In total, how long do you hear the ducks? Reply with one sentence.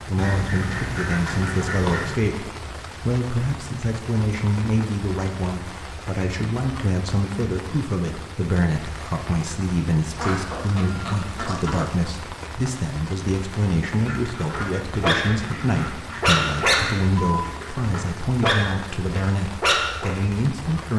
You can hear the ducks for 7 seconds altogether.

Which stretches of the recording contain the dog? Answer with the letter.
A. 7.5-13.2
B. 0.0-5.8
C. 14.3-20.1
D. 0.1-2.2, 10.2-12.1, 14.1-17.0
C.